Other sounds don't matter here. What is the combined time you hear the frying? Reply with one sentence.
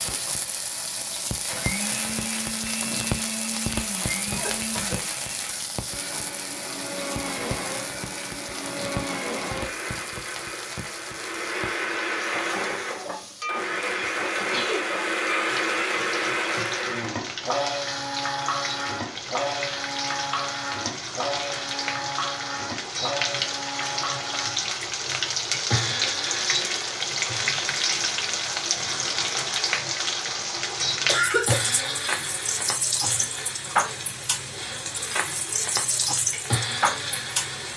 You can hear the frying for 38 seconds altogether.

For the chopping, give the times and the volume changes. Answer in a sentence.
The chopping can't be heard in this clip.